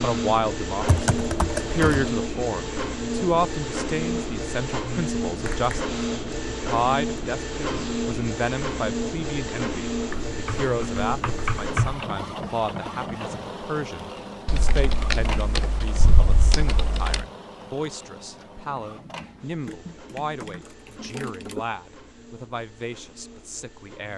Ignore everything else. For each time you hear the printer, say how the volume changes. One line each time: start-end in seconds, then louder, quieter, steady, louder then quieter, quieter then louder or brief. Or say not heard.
0.0-24.1 quieter.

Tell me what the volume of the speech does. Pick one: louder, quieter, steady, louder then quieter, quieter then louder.
quieter.